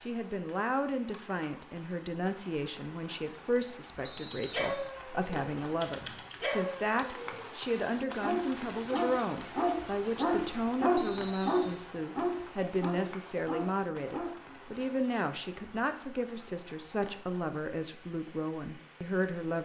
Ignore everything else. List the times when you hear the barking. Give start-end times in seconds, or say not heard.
4.3-14.3.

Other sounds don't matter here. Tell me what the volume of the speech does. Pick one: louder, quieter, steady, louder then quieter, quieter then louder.
steady.